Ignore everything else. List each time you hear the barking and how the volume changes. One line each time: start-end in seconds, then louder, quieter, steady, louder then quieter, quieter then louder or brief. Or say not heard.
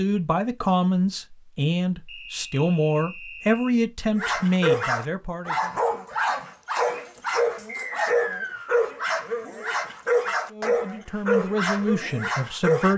4.2-12.9 steady.